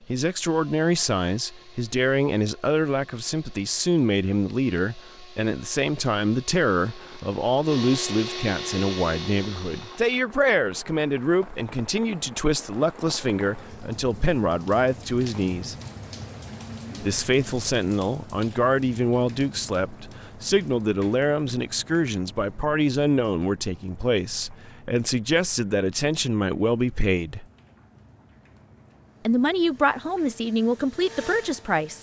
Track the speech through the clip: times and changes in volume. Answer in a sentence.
You can hear the speech from 0.1 to 15.8 s, at a steady volume; from 17.0 to 27.4 s, at a steady volume; and briefly from 29.2 to 31.9 s.